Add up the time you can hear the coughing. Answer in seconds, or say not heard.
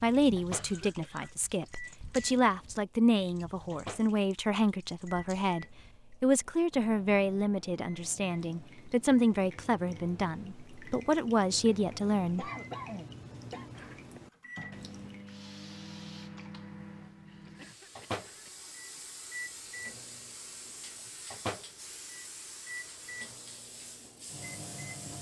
4 s.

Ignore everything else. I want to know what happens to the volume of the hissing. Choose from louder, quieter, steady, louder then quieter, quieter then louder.
louder.